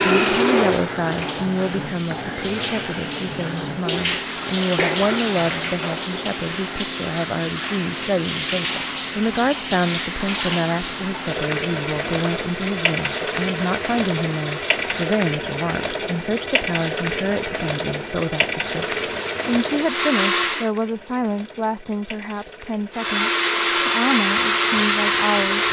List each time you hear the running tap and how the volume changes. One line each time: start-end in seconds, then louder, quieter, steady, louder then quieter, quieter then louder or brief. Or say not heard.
0.0-25.6 quieter.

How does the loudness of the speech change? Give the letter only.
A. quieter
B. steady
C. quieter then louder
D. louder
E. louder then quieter
B.